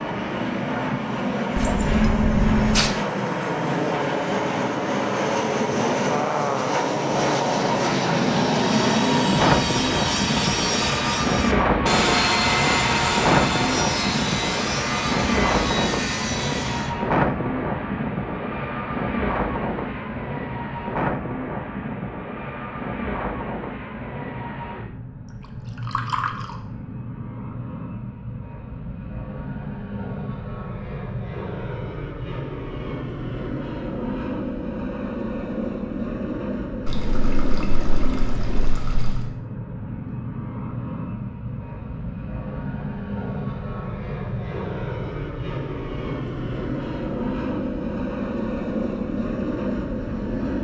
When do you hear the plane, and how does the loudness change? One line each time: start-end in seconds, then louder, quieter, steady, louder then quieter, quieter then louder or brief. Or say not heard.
0.0-50.5 quieter.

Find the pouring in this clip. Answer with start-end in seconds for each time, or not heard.
1.6-3.0, 25.9-26.6, 36.9-39.3.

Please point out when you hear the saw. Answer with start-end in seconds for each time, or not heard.
8.5-16.9.